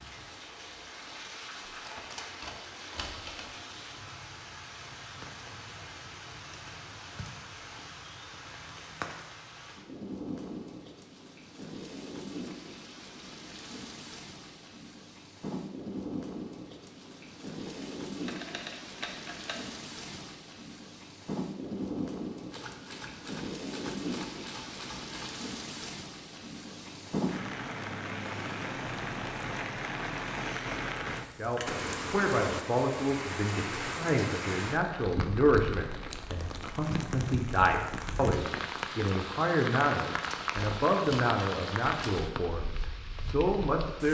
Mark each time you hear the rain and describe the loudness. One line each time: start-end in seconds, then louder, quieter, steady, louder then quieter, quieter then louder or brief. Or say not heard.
0.0-44.0 louder.